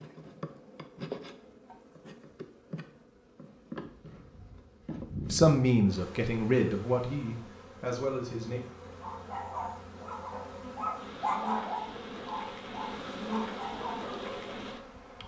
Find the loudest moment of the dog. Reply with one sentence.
The volume of the dog peaks at 11 seconds.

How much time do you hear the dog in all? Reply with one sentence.
You can hear the dog for 6 seconds altogether.